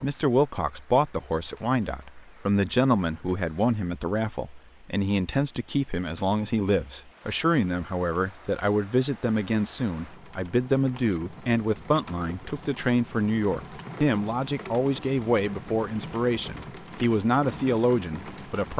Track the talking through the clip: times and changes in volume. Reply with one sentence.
You can hear the talking from 0.0 to 18.7 s, at a steady volume.